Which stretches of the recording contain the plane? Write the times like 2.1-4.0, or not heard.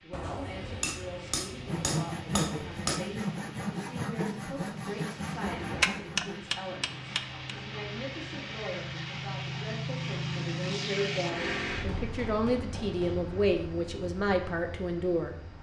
0.0-15.5.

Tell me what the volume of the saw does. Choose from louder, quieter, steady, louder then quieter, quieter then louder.
quieter.